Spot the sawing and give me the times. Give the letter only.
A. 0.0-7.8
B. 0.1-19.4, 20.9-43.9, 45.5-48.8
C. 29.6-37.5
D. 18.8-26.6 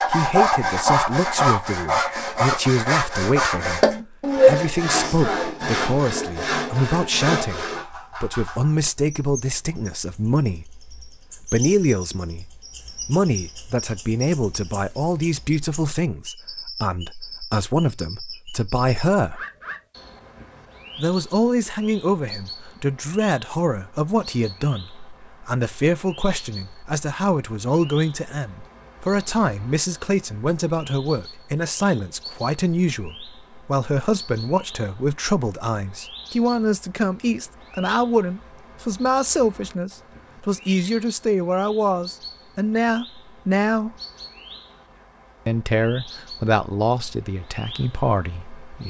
A.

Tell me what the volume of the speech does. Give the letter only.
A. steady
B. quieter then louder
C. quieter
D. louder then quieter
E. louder
A.